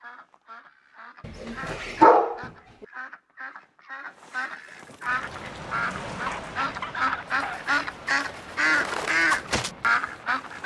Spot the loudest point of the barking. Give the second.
2 s.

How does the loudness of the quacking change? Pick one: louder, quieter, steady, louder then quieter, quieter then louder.
louder.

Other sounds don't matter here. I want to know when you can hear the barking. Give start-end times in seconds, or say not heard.
1.2-2.5, 6.1-7.8.